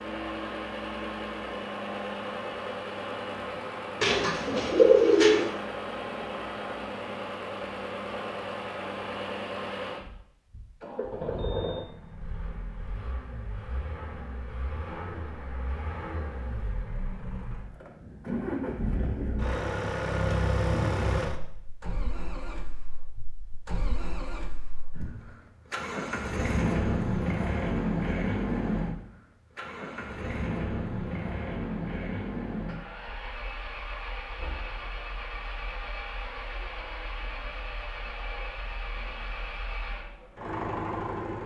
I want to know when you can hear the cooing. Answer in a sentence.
You can hear the cooing from 4.0 to 5.5 s.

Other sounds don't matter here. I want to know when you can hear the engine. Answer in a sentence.
You can hear the engine from 0.0 to 41.4 s.